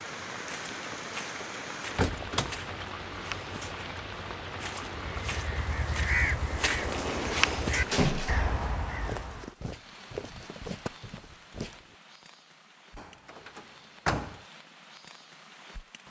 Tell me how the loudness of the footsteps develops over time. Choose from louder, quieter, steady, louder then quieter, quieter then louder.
louder then quieter.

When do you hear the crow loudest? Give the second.
6 s.